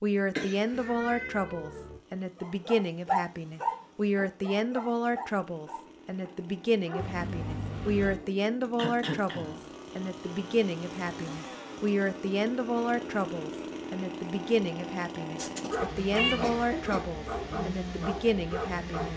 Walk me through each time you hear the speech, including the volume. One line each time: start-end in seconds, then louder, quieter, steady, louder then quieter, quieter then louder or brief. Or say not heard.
0.0-19.1 steady.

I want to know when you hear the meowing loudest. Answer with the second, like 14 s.
16 s.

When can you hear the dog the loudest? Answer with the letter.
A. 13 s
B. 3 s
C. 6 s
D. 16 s
B.